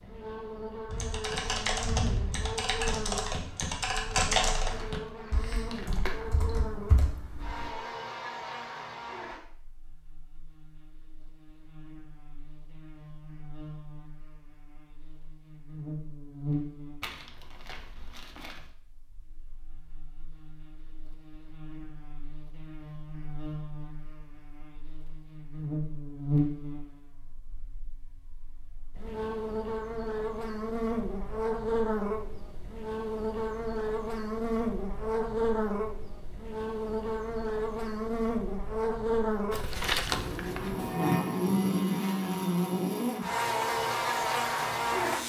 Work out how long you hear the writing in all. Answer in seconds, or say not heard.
not heard.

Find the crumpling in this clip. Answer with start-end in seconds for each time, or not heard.
4.6-6.5, 17.0-18.7, 39.5-41.0.